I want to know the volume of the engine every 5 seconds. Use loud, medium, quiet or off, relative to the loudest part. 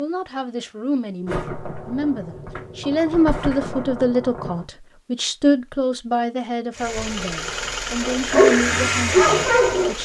off, loud.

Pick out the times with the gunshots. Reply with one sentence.
The gunshots can be heard from 1.2 to 4.7 s.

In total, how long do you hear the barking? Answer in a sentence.
You can hear the barking for 2 seconds altogether.